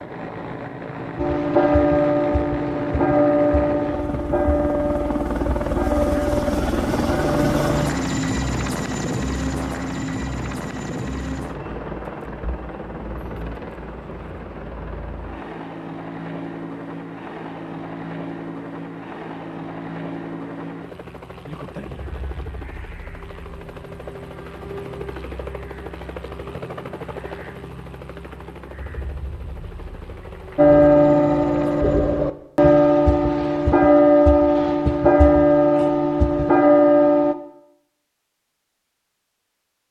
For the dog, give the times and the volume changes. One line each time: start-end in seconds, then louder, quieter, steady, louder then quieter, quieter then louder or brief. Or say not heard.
not heard.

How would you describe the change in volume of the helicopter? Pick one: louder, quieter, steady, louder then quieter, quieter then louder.
quieter.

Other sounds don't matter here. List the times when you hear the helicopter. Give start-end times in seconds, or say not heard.
0.0-32.2.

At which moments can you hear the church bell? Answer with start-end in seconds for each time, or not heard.
1.1-8.0, 30.6-37.4.